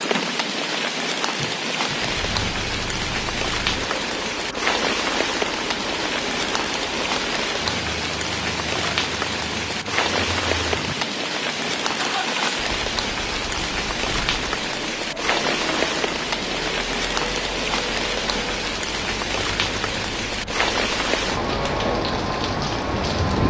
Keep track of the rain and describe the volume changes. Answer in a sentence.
The loudness of the rain stays about the same.